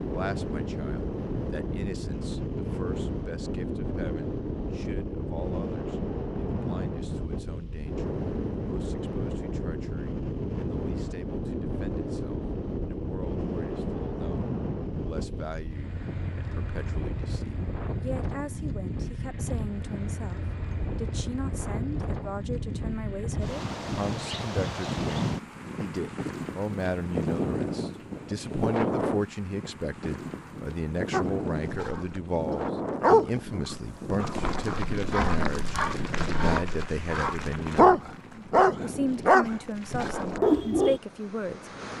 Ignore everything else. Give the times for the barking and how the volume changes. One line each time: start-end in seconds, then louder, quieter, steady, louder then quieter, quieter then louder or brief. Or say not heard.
31.1-41.0 quieter then louder.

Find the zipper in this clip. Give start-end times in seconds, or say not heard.
not heard.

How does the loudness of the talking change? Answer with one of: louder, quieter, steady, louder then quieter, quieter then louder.
louder.